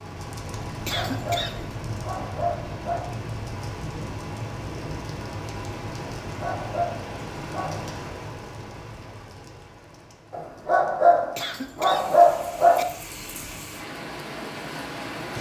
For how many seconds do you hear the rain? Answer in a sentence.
The rain can be heard for 15 seconds in total.